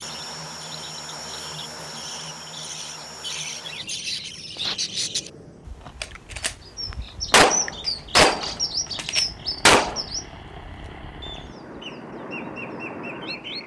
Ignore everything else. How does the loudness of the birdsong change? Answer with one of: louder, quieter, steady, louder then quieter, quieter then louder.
louder then quieter.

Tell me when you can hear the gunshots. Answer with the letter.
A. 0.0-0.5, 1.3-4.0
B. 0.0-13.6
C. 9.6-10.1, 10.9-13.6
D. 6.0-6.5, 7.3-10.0
D.